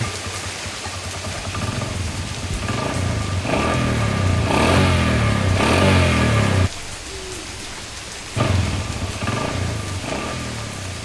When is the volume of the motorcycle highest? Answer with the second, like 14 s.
6 s.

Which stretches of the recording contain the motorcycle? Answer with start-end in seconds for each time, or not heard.
0.0-6.7, 8.3-11.0.